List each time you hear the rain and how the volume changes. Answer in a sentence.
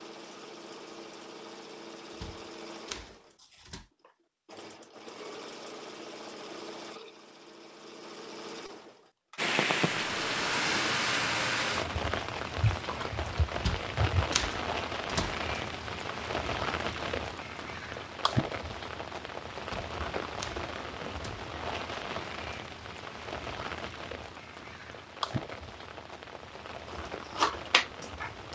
You can hear the rain from 9.3 to 28.5 s, getting quieter.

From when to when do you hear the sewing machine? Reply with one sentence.
The sewing machine can be heard from 0.0 to 10.9 s and from 26.9 to 28.4 s.